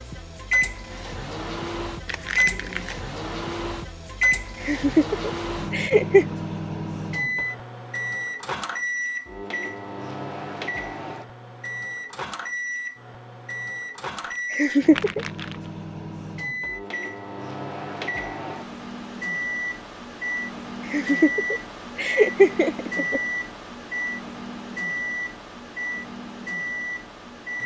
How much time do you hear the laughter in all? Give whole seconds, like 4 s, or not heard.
5 s.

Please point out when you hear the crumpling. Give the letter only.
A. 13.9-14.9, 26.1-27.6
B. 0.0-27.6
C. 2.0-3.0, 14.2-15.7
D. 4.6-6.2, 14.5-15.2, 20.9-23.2
C.